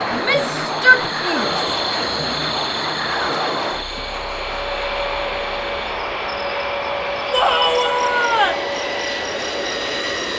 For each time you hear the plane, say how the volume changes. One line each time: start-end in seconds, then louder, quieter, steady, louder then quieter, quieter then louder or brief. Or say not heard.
0.0-10.3 steady.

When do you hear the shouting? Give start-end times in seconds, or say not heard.
0.1-1.6, 7.3-8.7.